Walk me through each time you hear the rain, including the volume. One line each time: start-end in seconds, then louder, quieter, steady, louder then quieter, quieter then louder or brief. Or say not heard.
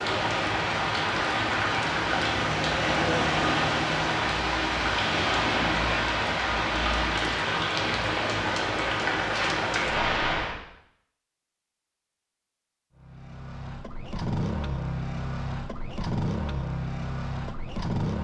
0.0-10.6 steady.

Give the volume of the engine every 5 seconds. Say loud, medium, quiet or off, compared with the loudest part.
loud, off, loud, loud.